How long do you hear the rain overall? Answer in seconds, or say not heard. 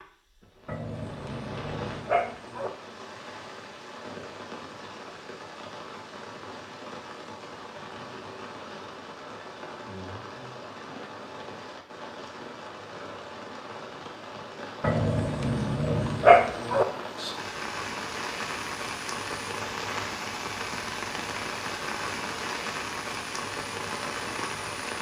25 s.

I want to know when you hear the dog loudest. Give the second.
16 s.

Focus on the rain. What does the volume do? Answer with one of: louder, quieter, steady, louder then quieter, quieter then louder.
louder.